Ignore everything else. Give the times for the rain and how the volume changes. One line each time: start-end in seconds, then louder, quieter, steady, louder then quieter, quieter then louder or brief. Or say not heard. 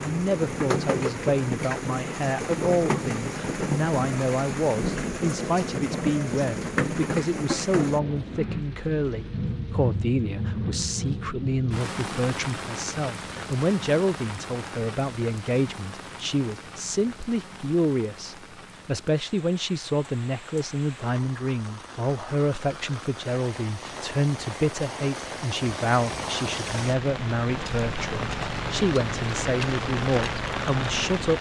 0.0-31.3 quieter then louder.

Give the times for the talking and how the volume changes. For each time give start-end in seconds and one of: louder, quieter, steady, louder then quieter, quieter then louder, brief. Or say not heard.
0.0-31.3 steady.